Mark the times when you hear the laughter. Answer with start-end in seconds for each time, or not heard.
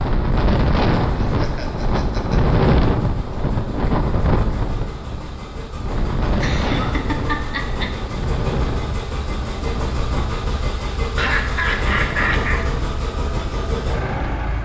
1.2-2.5, 6.4-7.9, 11.2-12.7.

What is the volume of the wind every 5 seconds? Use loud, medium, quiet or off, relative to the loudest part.
loud, medium, medium.